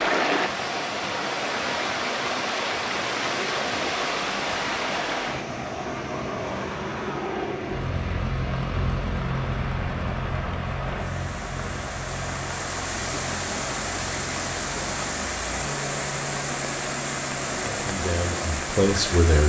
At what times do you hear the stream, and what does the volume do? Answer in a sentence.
You can hear the stream from 0.0 to 19.4 s, getting quieter then louder.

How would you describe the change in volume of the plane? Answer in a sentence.
The volume of the plane goes up, then down.